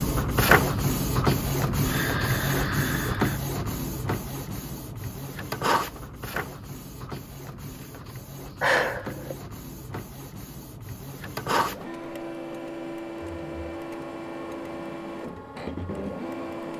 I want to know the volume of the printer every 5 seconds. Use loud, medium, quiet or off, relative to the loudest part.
loud, medium, medium, medium.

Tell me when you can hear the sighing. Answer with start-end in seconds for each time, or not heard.
1.8-3.4, 8.6-9.3.